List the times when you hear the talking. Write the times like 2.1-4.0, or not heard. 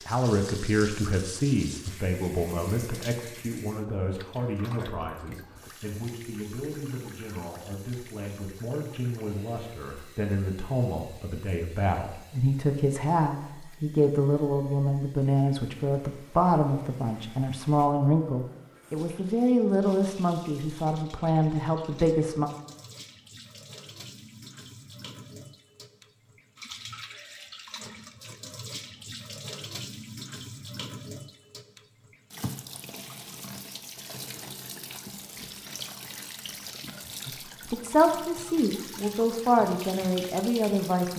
0.1-22.5, 37.2-41.1.